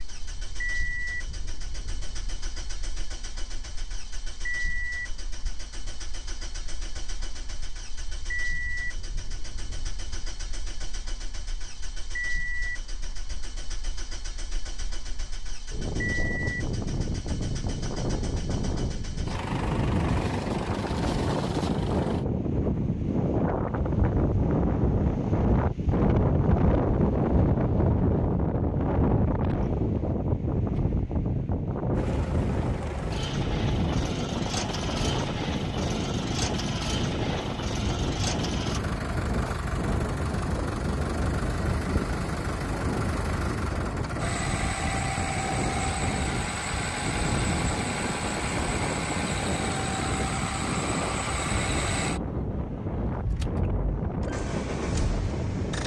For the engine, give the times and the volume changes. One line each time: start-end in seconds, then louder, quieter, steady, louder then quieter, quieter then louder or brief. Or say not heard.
0.0-22.2 steady
31.9-55.8 steady.